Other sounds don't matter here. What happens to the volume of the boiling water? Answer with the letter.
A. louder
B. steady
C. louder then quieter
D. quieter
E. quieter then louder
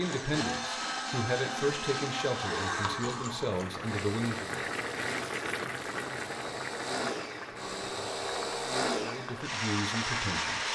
D.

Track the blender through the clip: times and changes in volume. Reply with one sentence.
You can hear the blender from 0.0 to 10.6 s, getting quieter then louder.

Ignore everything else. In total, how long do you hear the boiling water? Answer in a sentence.
The boiling water can be heard for 7 seconds in total.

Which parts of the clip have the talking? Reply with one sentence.
The talking can be heard from 0.0 to 4.5 s and from 9.0 to 10.6 s.